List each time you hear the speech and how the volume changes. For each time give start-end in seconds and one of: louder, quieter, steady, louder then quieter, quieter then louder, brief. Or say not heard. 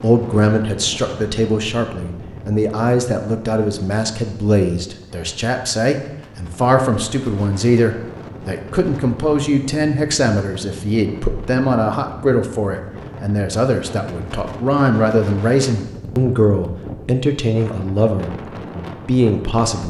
0.0-19.8 steady.